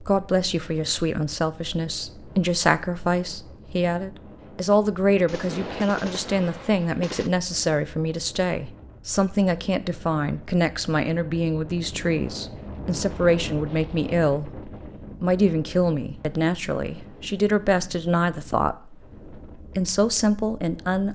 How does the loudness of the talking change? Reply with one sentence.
The loudness of the talking stays about the same.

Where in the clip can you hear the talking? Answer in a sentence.
The talking can be heard from 0.0 to 14.5 s and from 15.2 to 21.1 s.